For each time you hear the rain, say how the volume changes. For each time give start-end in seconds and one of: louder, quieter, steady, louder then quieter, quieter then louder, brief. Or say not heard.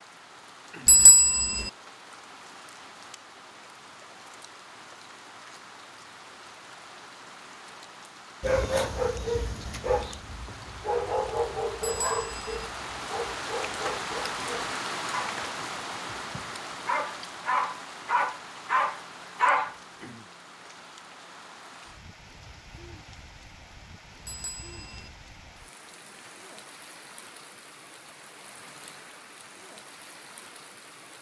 0.0-31.1 louder then quieter.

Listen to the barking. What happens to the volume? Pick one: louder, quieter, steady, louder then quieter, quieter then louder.
quieter then louder.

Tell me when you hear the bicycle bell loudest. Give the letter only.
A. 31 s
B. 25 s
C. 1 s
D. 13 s
C.